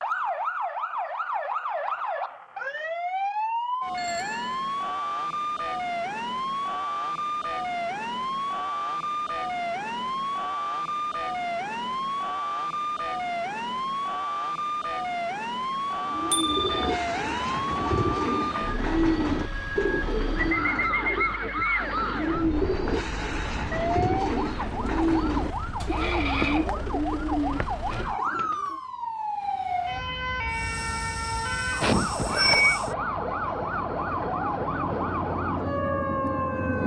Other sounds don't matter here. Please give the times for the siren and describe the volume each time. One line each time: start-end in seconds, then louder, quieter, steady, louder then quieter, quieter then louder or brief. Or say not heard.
0.0-36.8 steady.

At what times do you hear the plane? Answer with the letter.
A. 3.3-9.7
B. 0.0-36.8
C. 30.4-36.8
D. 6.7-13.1
C.